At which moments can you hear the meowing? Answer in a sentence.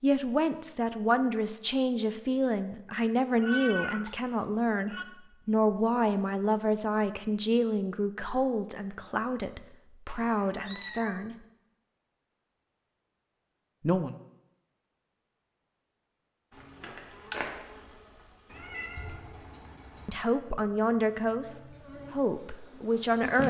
You can hear the meowing from 3.4 to 5.0 s, from 10.1 to 11.2 s and from 18.4 to 20.1 s.